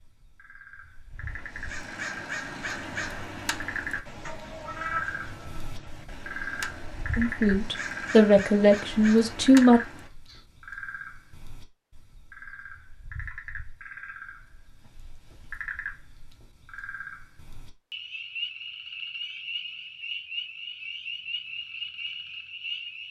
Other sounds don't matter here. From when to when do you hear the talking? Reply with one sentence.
You can hear the talking from 7.2 to 9.8 s.